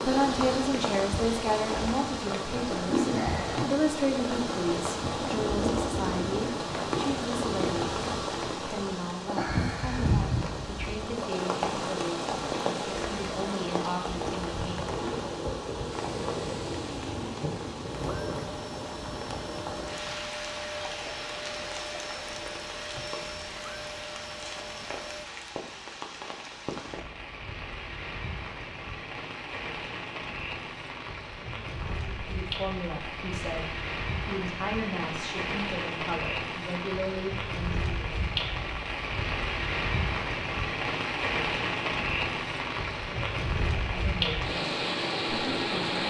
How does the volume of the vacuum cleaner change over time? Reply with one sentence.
The loudness of the vacuum cleaner stays about the same.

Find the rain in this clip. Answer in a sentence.
The rain can be heard from 0.0 to 46.0 s.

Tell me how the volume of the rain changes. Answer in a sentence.
The loudness of the rain goes down, then up.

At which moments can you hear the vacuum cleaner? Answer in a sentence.
The vacuum cleaner can be heard from 15.9 to 25.2 s.